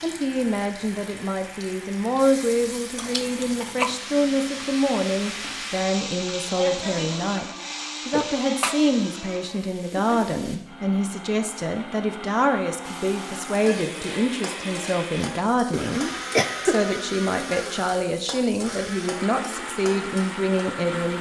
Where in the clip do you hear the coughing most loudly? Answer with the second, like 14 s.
17 s.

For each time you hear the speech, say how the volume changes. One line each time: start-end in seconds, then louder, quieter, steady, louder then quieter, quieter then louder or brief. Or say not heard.
0.0-21.1 steady.